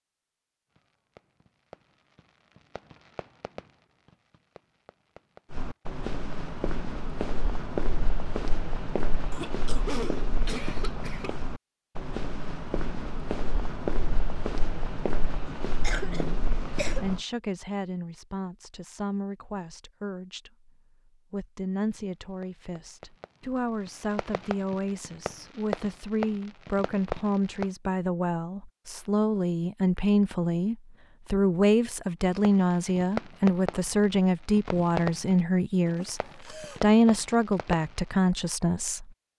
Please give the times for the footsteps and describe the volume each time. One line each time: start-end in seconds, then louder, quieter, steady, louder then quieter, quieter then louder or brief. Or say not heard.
5.5-17.2 steady.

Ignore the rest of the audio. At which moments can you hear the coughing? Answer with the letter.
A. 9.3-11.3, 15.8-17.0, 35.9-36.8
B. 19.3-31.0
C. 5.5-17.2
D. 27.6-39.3
A.